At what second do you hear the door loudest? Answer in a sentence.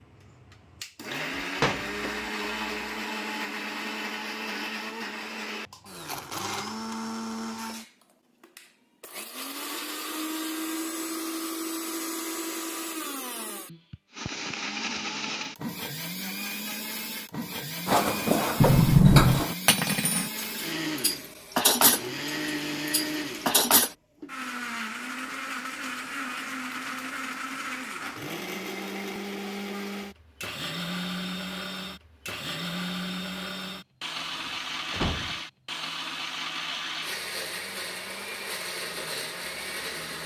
The loudest moment of the door is at 19 seconds.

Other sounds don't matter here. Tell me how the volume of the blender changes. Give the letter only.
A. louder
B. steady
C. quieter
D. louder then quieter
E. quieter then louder
B.